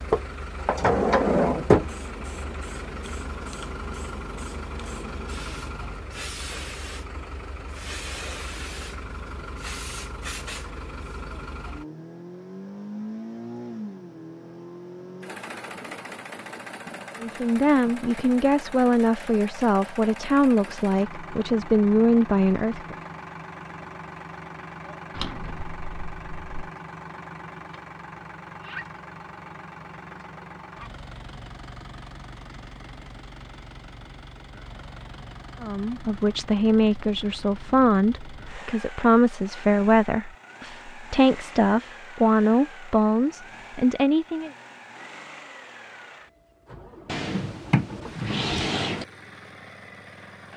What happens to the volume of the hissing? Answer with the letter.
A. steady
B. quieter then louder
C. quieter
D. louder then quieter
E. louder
A.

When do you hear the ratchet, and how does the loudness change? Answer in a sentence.
The ratchet can't be heard in this clip.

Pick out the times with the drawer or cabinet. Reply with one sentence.
The drawer or cabinet can be heard from 0.1 to 1.9 s, from 25.1 to 26.7 s and from 47.0 to 49.0 s.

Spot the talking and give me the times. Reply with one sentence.
The talking can be heard from 17.2 to 22.9 s and from 35.6 to 44.5 s.